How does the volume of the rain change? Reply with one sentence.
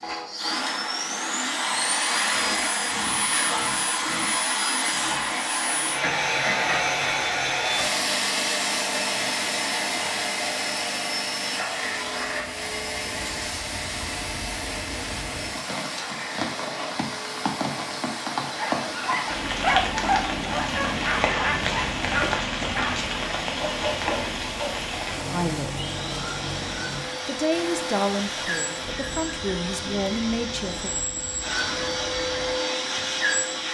The loudness of the rain goes up, then down.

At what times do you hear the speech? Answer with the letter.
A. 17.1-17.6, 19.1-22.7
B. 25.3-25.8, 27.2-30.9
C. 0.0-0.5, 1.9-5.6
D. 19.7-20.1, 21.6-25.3
B.